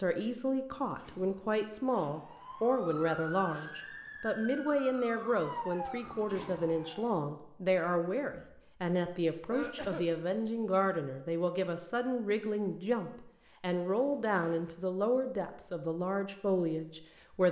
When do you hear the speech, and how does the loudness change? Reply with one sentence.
The speech can be heard from 0.0 to 17.4 s, at a steady volume.